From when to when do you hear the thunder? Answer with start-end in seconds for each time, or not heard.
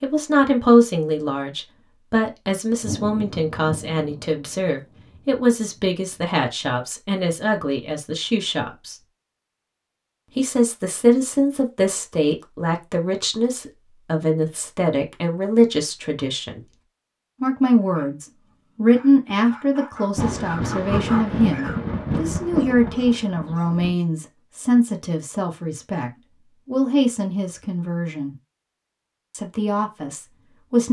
2.8-5.2, 20.1-23.9.